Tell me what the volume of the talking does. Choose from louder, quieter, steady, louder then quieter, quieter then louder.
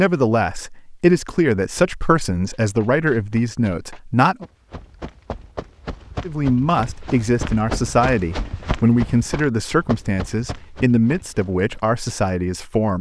steady.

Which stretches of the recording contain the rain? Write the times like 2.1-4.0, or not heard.
not heard.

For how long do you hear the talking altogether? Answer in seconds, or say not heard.
11 s.